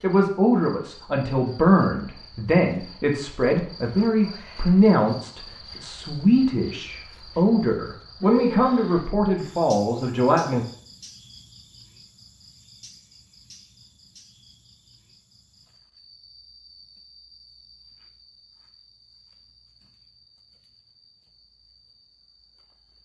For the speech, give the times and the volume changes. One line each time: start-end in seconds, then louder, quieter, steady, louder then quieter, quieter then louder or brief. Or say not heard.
0.0-10.7 steady.